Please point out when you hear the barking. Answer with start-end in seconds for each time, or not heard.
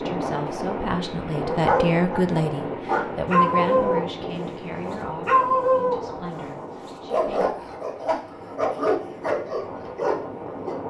1.4-4.1, 5.2-6.0, 6.8-10.8.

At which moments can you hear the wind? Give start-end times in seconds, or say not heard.
0.0-10.8.